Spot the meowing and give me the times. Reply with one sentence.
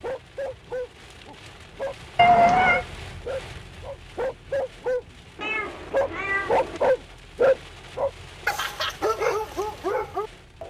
You can hear the meowing from 2.1 to 2.9 s and from 5.4 to 6.8 s.